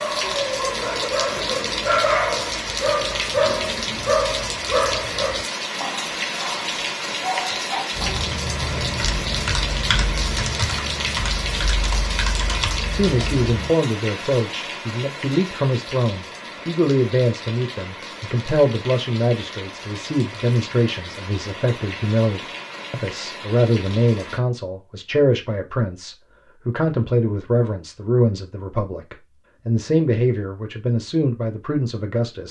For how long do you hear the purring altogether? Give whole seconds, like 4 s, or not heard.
not heard.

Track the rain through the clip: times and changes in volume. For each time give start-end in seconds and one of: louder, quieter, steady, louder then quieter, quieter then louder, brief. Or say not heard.
0.0-24.4 quieter.